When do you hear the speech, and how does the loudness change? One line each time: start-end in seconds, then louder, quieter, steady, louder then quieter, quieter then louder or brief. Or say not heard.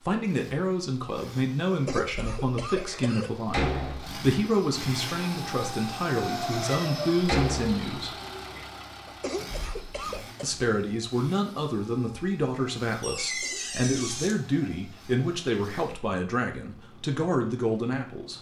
0.1-8.2 steady
10.4-18.3 steady.